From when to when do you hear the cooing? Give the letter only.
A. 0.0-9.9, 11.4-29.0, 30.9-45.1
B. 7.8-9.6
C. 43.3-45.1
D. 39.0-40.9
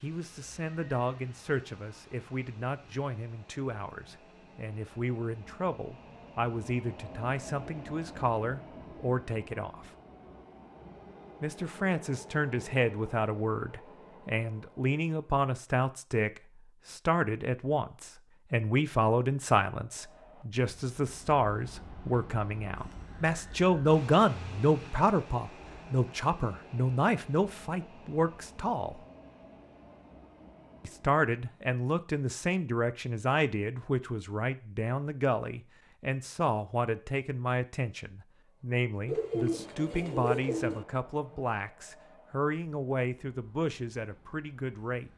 D.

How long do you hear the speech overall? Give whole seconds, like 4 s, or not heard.
42 s.